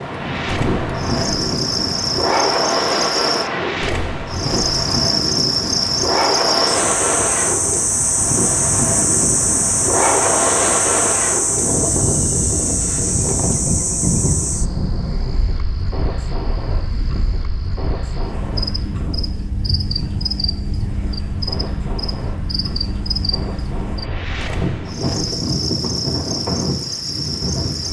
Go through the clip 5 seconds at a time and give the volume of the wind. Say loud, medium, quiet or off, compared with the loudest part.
loud, loud, loud, medium, medium, loud.